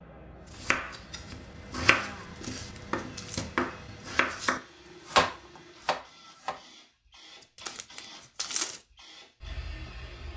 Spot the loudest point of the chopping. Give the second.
5 s.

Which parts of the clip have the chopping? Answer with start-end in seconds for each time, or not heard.
0.5-6.5.